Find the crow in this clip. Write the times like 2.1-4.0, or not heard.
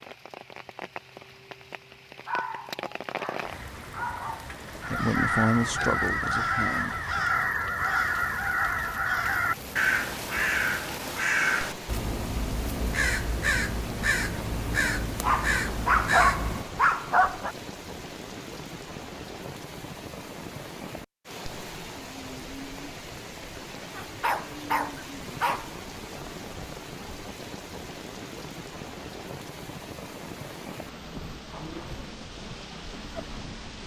4.8-16.6.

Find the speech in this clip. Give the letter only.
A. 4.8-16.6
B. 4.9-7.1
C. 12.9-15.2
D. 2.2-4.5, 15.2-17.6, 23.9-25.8
B.